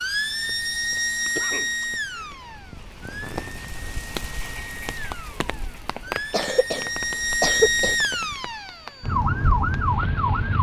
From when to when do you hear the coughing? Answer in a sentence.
You can hear the coughing from 1.4 to 2.4 s and from 6.0 to 8.0 s.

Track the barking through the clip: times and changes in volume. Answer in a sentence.
You can't hear the barking here.